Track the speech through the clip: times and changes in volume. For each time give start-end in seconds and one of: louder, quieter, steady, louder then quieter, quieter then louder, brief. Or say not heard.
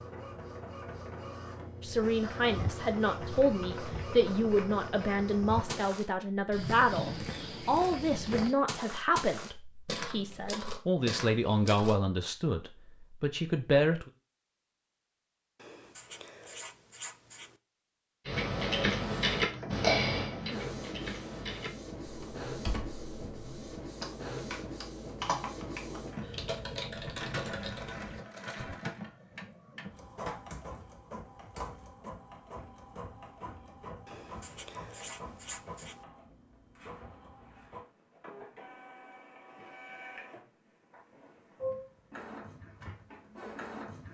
1.8-14.1 steady.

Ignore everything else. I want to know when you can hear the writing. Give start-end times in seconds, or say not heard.
15.6-17.6, 34.0-36.0.